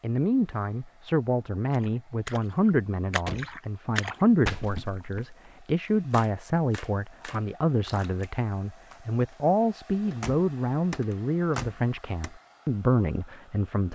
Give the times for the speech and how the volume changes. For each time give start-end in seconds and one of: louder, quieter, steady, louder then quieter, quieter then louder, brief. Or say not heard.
0.0-13.9 steady.